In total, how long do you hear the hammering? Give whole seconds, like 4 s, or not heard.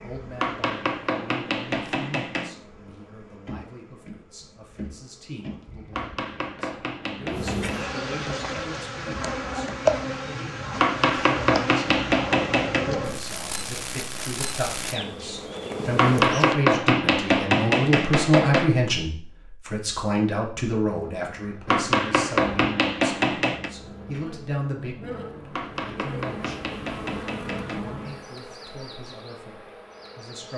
13 s.